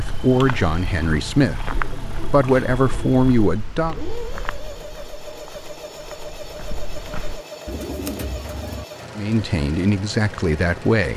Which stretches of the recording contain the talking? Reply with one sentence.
The talking can be heard from 0.0 to 4.0 s and from 9.2 to 11.1 s.